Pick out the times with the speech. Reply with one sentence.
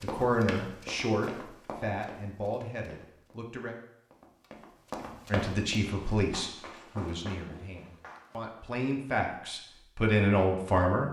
You can hear the speech from 0.0 to 3.8 s and from 5.3 to 11.0 s.